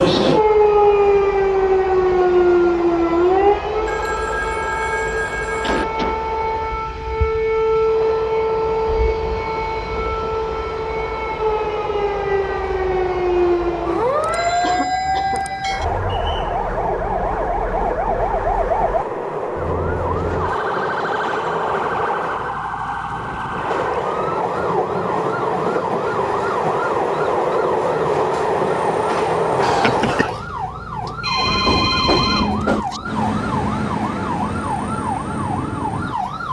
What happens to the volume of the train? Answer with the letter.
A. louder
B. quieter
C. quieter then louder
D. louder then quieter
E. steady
A.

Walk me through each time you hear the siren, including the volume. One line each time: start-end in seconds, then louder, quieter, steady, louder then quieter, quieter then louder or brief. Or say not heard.
0.0-36.4 quieter.